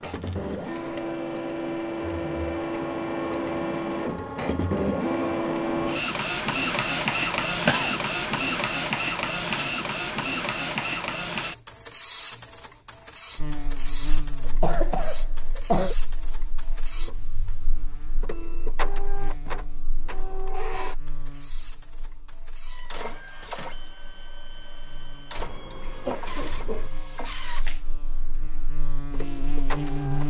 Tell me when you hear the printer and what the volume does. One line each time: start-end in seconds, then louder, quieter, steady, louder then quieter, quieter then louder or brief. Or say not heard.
0.0-30.2 quieter.